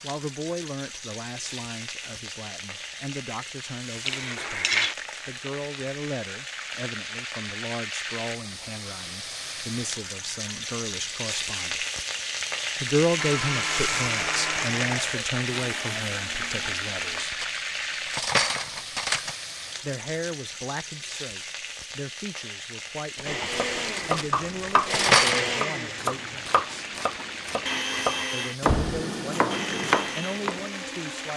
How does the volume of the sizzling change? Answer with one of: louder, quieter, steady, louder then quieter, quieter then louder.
louder then quieter.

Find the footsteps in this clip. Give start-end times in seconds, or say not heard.
not heard.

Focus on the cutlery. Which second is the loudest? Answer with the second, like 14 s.
25 s.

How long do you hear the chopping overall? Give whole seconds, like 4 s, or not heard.
7 s.